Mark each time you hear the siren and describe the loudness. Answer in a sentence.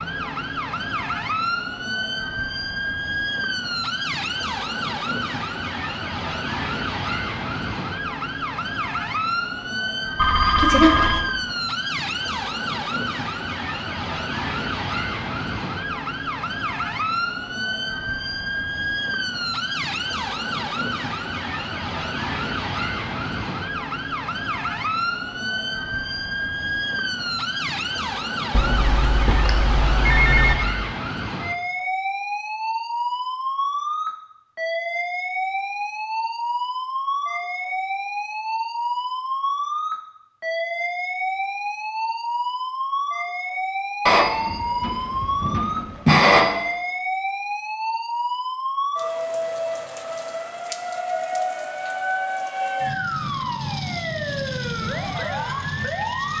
You can hear the siren from 0.0 to 56.3 s, at a steady volume.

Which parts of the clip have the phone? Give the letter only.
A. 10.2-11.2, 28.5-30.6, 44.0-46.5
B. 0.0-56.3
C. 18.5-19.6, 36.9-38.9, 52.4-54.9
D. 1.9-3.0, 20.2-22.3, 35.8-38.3
A.